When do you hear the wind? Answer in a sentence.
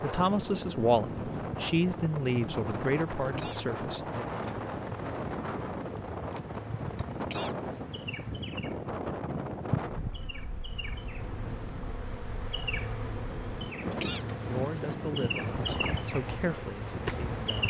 The wind can be heard from 0.0 to 17.6 s.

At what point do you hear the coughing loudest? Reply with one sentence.
The volume of the coughing peaks at 14 seconds.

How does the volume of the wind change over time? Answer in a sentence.
The loudness of the wind goes down, then up.